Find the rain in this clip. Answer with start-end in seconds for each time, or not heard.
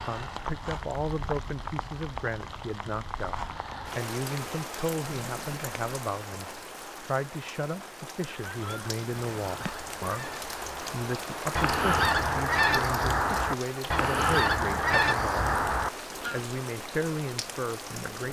0.0-18.2.